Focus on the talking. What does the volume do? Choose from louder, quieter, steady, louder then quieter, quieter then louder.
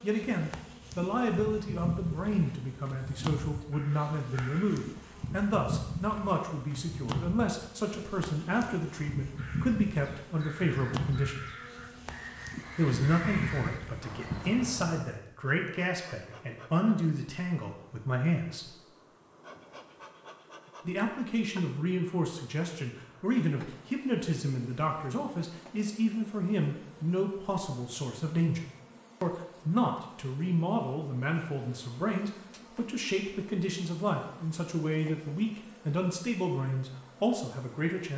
steady.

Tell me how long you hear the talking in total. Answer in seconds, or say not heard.
34 s.